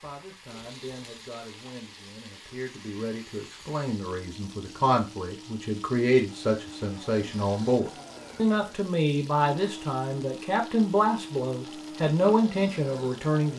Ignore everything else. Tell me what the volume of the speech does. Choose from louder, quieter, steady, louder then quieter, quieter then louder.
louder.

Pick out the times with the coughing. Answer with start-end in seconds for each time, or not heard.
not heard.